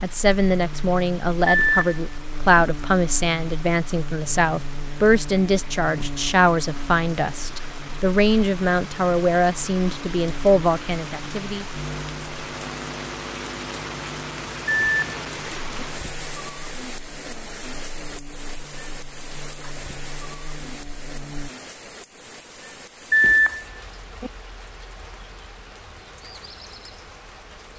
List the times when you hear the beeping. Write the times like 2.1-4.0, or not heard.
1.4-2.6, 14.7-15.8, 23.1-24.3.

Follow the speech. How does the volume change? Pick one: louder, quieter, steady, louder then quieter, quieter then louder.
steady.